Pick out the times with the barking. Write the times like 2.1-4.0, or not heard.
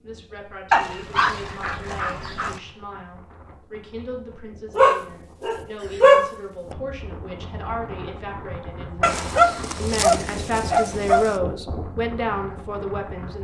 0.7-2.6, 4.8-6.8, 9.0-11.3.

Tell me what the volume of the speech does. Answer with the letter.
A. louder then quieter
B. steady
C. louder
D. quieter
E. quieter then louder
C.